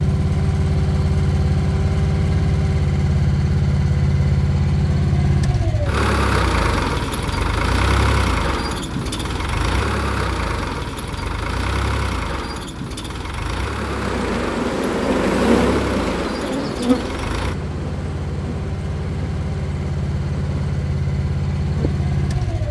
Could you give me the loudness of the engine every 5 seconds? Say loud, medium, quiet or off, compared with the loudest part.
loud, loud, medium, medium, loud.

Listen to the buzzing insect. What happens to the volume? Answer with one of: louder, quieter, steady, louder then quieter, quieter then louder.
quieter.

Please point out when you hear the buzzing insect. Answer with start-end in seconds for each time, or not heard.
13.7-22.6.